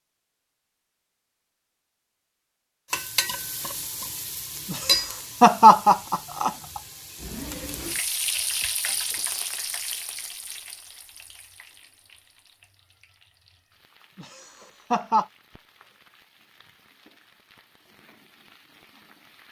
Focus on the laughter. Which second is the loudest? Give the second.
6 s.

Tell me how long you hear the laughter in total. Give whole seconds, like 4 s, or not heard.
3 s.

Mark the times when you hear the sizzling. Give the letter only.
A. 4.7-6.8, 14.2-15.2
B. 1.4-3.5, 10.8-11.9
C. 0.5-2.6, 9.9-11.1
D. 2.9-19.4
D.